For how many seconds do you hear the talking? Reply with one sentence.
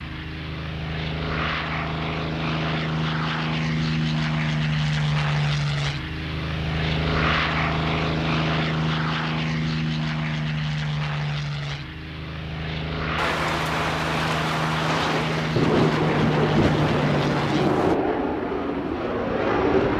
The talking can't be heard in this clip.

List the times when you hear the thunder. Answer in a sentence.
You can hear the thunder from 13.2 to 18.0 s.